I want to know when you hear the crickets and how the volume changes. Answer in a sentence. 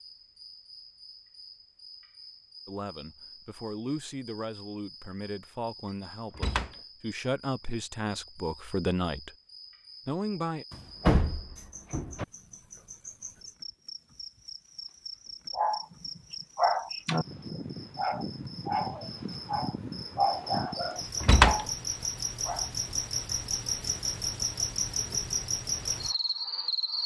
The crickets can be heard from 0.0 to 27.0 s, getting louder.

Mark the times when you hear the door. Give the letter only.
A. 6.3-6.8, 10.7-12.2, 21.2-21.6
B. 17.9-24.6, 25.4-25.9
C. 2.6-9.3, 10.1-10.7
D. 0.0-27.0
A.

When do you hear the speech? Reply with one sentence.
The speech can be heard from 2.6 to 9.3 s and from 10.1 to 10.7 s.